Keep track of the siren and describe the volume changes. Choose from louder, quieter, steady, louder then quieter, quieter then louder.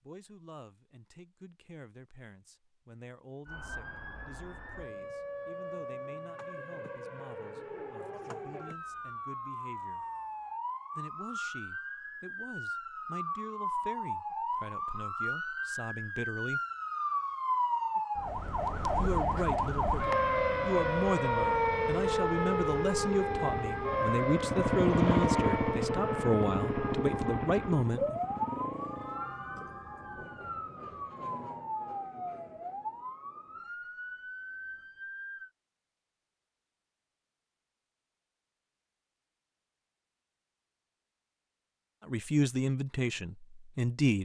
louder then quieter.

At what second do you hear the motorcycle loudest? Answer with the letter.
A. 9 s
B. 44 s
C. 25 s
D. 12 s
C.